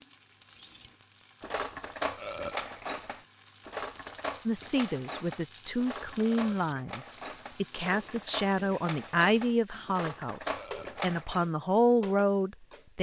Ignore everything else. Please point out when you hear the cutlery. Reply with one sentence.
The cutlery can be heard from 0.5 to 11.4 s.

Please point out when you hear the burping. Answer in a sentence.
The burping can be heard from 2.1 to 2.6 s, from 6.2 to 6.7 s and from 10.5 to 11.0 s.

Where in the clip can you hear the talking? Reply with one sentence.
The talking can be heard from 4.5 to 12.9 s.